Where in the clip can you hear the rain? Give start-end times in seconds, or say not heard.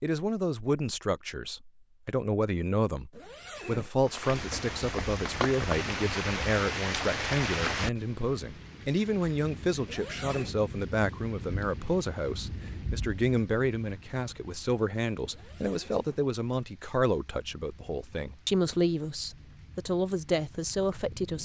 4.0-21.3.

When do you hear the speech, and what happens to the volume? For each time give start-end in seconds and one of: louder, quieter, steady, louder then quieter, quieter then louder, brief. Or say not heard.
0.0-21.3 steady.